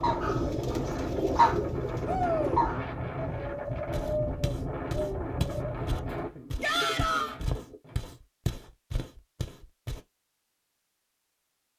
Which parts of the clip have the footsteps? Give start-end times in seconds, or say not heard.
3.6-10.0.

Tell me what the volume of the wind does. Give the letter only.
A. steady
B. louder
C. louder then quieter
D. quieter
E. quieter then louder
A.